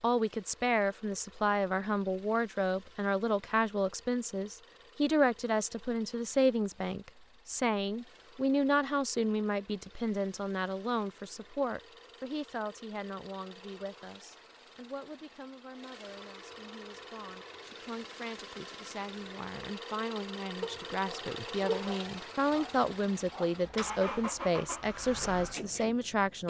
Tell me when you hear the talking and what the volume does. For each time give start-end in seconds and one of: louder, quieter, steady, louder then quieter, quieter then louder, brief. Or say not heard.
0.0-26.4 quieter then louder.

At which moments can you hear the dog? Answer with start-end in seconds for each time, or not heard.
20.6-23.6.